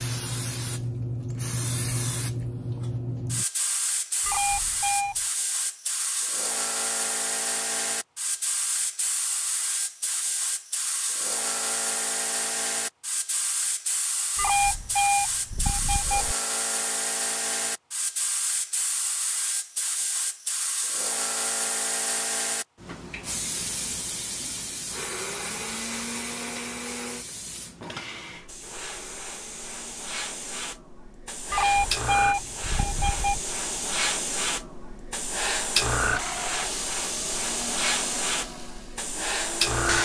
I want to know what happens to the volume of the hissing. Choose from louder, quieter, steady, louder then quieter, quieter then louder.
quieter then louder.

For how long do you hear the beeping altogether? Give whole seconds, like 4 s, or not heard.
5 s.